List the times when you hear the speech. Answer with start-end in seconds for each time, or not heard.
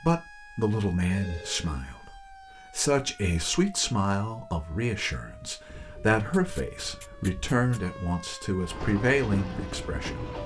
0.0-10.2.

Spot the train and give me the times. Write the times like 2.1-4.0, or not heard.
8.6-10.4.